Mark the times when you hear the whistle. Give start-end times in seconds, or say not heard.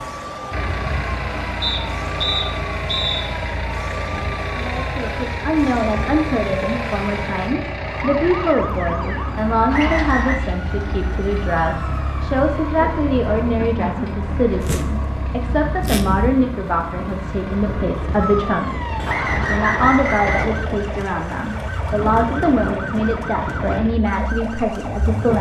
1.6-3.2, 9.7-10.4, 19.1-20.6.